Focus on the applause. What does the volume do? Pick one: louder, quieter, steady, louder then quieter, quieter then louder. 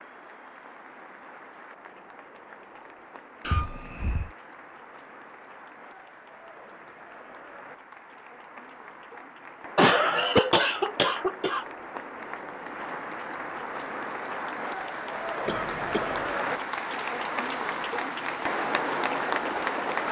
louder.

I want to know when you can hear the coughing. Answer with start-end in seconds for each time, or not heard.
3.4-4.3, 9.8-11.7, 15.4-16.3.